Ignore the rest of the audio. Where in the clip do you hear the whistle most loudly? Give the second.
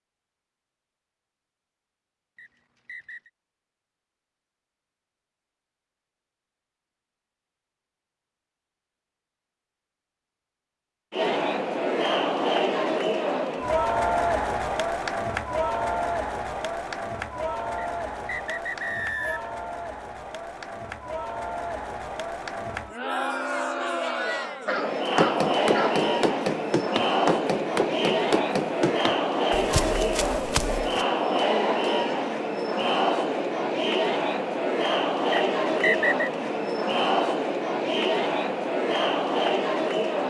36 s.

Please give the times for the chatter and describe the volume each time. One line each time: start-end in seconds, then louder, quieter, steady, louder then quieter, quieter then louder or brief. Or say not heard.
11.1-40.2 quieter then louder.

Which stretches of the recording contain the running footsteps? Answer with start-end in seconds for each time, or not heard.
25.1-31.1.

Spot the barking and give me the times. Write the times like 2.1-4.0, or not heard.
24.6-26.1.